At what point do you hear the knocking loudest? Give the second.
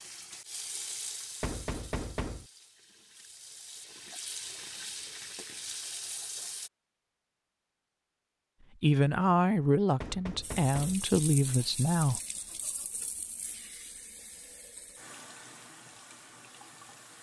2 s.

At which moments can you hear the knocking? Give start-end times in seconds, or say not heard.
1.4-2.5, 10.0-11.1.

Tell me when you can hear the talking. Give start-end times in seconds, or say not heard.
8.8-12.2.